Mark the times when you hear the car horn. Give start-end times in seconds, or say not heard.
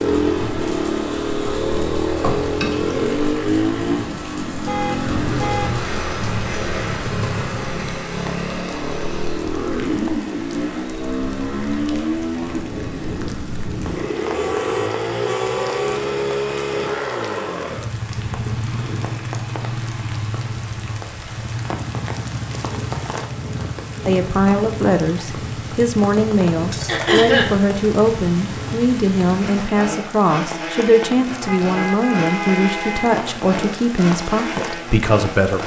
4.7-5.7, 14.3-16.0, 31.4-33.1.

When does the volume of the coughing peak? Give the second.
27 s.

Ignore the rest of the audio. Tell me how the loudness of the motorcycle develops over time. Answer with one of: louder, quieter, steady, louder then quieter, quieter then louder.
quieter.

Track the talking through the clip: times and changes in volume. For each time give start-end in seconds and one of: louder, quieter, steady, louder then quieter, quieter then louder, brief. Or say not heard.
24.1-35.6 steady.